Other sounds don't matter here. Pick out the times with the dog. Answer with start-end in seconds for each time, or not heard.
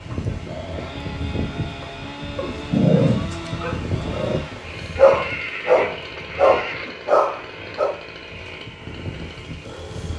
2.4-8.0.